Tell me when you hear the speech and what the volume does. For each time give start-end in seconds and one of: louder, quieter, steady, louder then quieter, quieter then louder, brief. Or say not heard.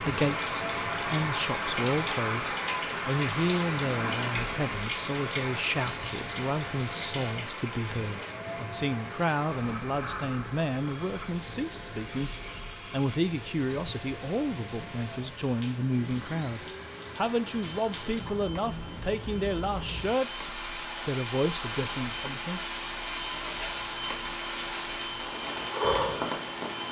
0.0-22.6 steady.